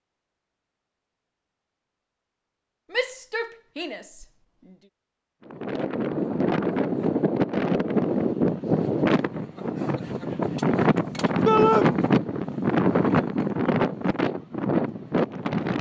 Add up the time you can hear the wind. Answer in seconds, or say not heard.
10 s.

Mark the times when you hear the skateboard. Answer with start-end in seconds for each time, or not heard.
not heard.